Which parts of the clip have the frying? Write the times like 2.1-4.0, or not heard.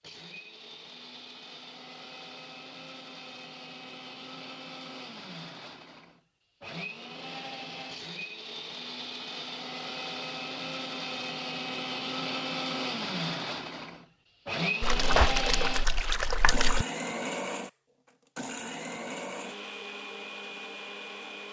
not heard.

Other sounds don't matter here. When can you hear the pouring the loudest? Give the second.
15 s.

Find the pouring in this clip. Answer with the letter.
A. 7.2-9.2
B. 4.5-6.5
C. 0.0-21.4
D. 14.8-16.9
D.